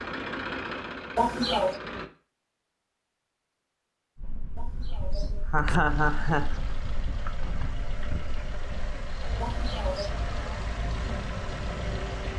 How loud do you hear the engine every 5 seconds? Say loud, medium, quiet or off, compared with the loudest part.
loud, medium, loud.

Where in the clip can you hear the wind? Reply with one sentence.
You can hear the wind from 4.2 to 12.3 s.